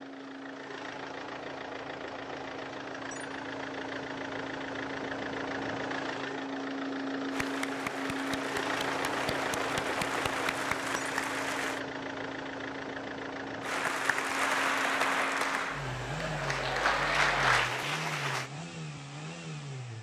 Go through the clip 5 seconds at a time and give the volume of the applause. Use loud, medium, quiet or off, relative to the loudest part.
off, medium, loud, loud.